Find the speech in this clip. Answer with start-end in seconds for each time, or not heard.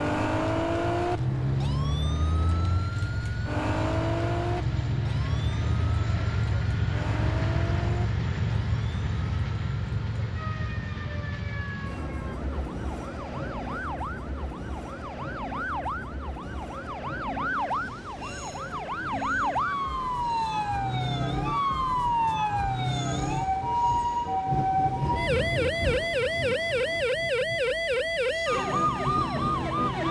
not heard.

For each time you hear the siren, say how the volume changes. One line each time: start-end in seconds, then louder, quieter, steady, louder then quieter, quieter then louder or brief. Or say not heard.
0.0-30.0 quieter then louder.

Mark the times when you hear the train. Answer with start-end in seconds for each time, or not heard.
0.1-30.0.